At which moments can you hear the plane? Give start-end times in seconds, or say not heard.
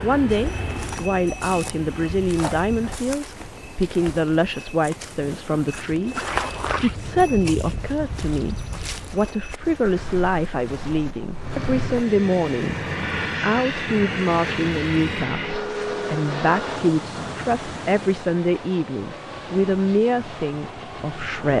0.0-2.2, 11.3-21.4.